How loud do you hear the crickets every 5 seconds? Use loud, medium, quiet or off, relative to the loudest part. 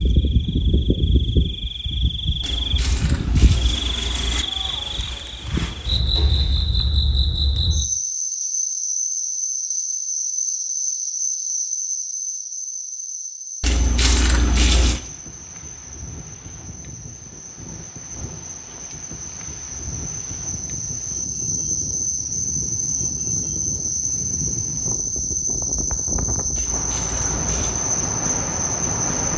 loud, loud, loud, quiet, loud, loud.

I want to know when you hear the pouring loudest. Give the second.
15 s.